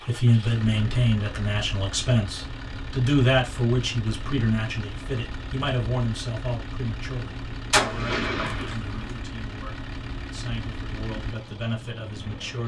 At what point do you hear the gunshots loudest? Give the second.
8 s.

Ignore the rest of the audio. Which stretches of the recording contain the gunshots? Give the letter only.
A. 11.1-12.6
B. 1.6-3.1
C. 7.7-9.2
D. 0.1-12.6
C.